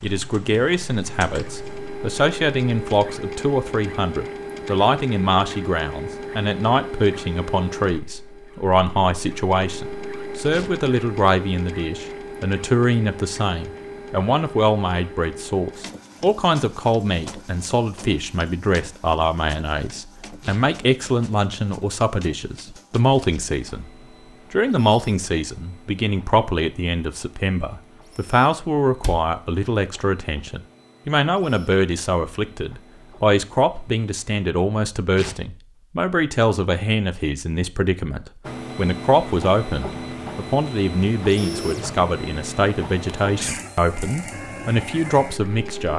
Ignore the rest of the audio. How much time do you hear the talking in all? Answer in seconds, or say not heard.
45 s.